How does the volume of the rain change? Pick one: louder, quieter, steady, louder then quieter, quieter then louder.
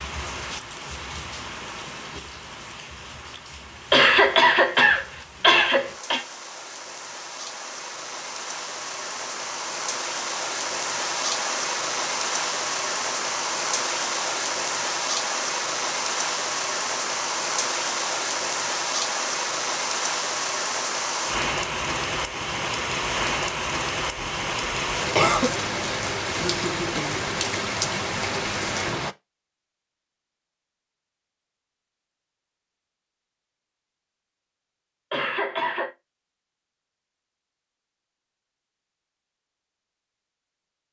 louder.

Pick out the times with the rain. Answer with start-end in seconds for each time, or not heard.
0.0-29.1.